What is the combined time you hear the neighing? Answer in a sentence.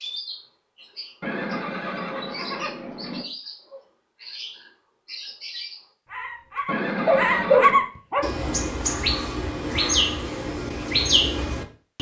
You can hear the neighing for 3 seconds altogether.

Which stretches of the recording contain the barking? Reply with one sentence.
The barking can be heard from 7.0 to 8.3 s.